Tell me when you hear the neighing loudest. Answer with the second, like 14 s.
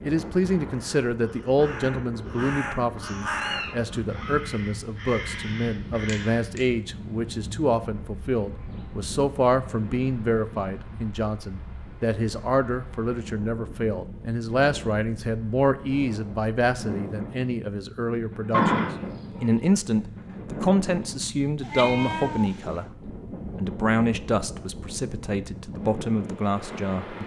19 s.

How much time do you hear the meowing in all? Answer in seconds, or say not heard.
2 s.